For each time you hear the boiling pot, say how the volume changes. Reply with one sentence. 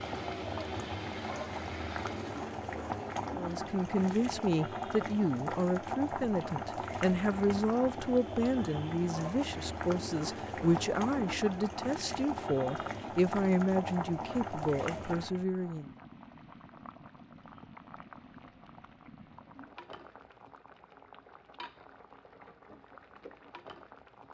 You can hear the boiling pot from 0.0 to 24.2 s, getting quieter.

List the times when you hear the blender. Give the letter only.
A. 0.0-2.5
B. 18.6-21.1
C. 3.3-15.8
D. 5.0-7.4
A.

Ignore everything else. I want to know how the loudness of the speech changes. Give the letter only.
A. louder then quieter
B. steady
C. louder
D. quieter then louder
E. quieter
B.